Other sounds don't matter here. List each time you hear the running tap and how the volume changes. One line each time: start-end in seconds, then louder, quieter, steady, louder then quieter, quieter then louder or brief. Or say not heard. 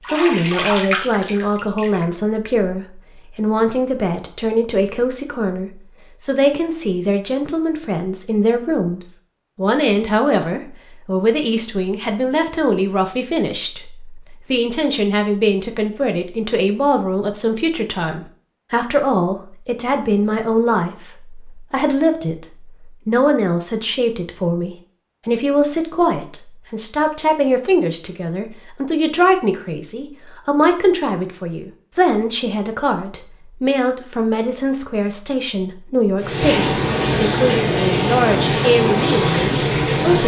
0.0-2.1 brief
36.2-40.2 steady.